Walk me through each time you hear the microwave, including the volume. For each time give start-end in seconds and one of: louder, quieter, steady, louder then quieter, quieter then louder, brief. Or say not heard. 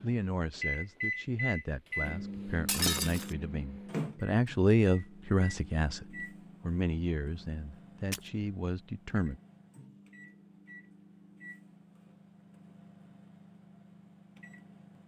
0.0-15.0 quieter.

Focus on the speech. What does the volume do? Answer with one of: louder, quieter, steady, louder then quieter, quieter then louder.
louder then quieter.